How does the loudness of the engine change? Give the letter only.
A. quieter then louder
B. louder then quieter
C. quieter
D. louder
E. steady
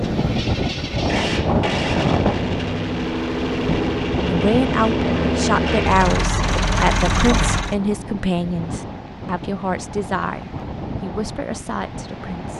D.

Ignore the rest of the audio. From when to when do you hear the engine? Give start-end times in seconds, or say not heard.
0.0-7.8.